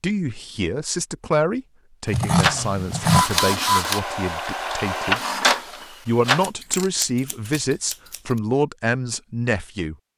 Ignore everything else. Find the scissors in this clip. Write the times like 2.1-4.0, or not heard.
2.1-3.2, 6.4-8.2.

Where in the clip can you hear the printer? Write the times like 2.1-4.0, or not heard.
2.4-6.5.